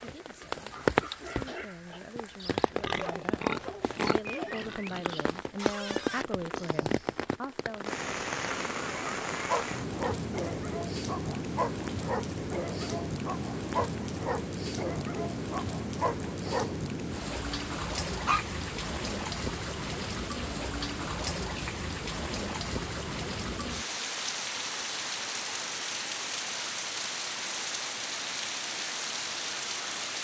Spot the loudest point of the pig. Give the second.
4 s.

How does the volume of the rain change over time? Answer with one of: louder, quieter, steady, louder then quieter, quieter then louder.
steady.